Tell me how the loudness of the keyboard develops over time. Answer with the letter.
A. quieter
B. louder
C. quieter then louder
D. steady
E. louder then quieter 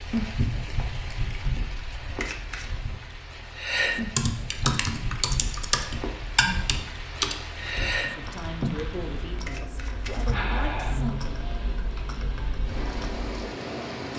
A.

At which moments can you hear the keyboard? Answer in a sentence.
The keyboard can be heard from 3.5 to 13.2 s.